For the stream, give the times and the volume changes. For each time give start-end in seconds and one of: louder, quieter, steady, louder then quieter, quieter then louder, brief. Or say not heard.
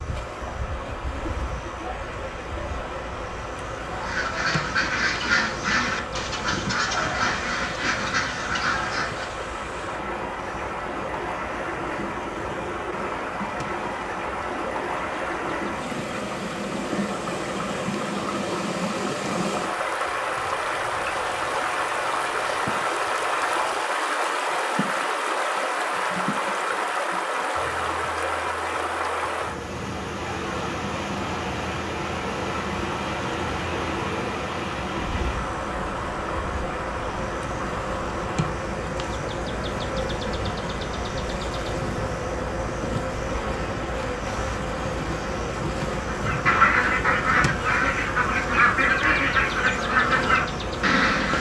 0.0-51.3 louder then quieter.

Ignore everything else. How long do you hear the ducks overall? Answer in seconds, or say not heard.
11 s.